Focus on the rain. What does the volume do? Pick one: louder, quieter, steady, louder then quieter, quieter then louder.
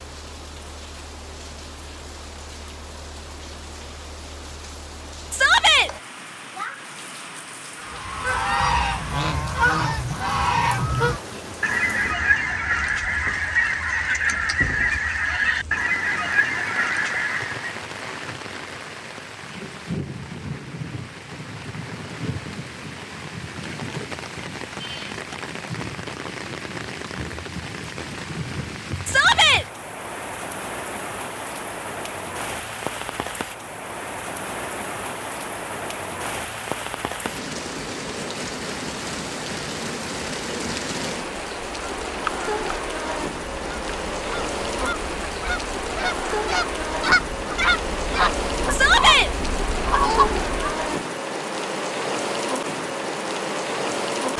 louder.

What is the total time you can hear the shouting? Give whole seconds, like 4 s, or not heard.
2 s.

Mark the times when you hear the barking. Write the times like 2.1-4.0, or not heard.
not heard.